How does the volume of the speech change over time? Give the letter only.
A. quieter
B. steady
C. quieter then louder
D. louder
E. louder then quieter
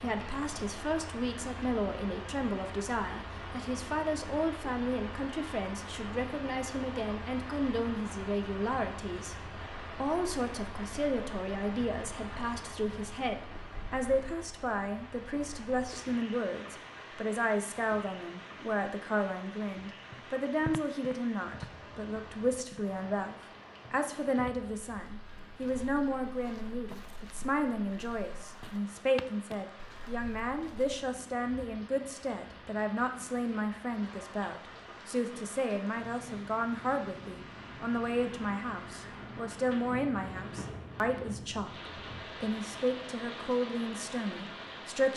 B.